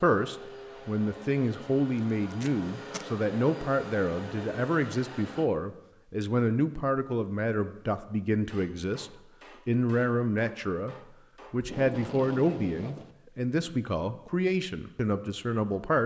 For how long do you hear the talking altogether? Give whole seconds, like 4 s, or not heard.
16 s.